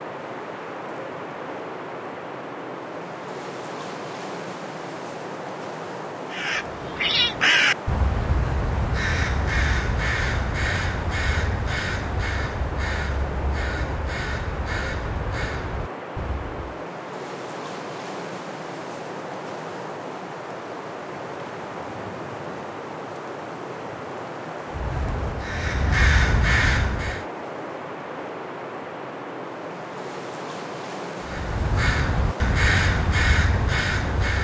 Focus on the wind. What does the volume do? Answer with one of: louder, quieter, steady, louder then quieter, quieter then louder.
steady.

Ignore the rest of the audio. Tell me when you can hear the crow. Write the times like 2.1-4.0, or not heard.
6.3-16.9, 24.7-27.2, 31.2-34.3.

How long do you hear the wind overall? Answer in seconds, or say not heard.
34 s.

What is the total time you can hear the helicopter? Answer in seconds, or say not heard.
not heard.